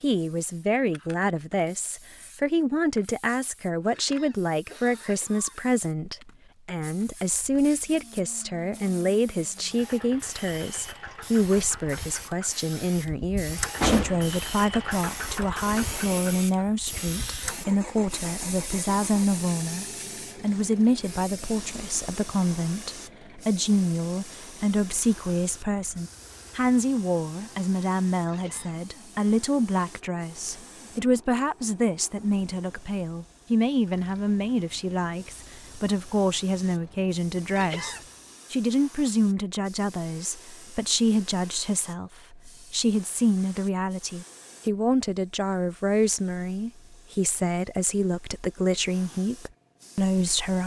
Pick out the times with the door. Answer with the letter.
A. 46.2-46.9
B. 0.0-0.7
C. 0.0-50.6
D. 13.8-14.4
D.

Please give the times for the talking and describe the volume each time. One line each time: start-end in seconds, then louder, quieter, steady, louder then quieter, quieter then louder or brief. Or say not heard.
0.0-50.6 steady.